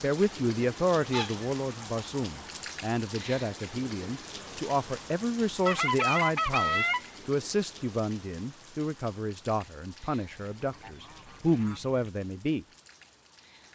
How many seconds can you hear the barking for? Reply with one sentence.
The barking can't be heard in this clip.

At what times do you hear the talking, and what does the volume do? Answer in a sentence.
The talking can be heard from 0.0 to 12.7 s, at a steady volume.